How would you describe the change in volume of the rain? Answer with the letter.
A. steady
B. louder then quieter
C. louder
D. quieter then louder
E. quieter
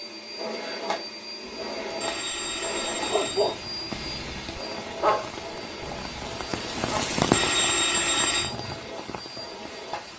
B.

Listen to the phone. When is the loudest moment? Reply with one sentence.
The loudest moment of the phone is at 8 seconds.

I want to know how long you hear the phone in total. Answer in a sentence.
You can hear the phone for 4 seconds altogether.